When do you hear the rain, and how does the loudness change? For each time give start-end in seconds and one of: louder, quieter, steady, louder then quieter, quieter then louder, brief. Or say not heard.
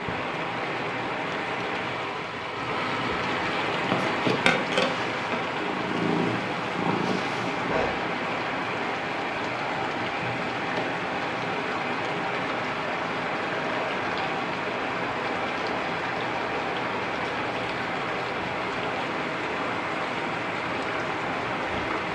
0.0-22.1 steady.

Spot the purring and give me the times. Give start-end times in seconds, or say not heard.
3.7-7.9.